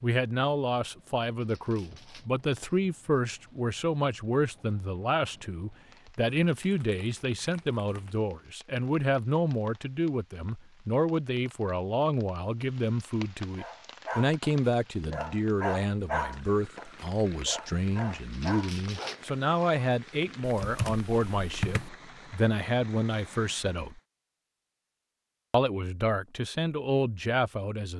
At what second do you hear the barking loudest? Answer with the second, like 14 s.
16 s.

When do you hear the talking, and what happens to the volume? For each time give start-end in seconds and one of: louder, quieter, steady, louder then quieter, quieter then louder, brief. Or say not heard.
0.0-24.0 steady
25.5-27.9 brief.